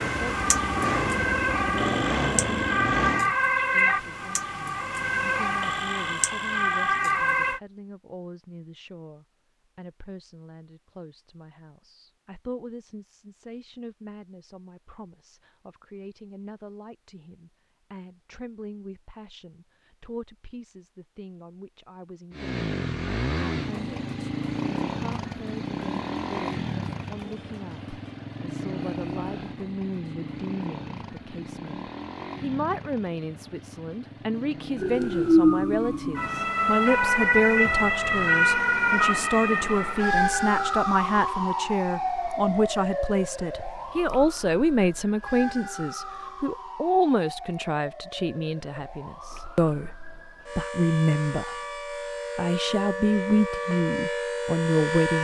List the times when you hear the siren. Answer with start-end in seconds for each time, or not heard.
0.0-7.6, 34.8-55.1.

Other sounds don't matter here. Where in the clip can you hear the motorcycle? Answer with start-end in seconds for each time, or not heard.
0.0-3.4, 22.3-36.6.